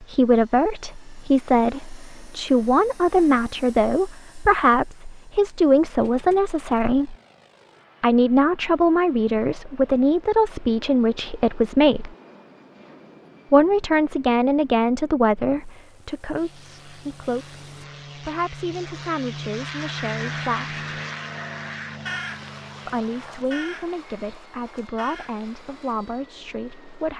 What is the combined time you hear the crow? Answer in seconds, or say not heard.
6 s.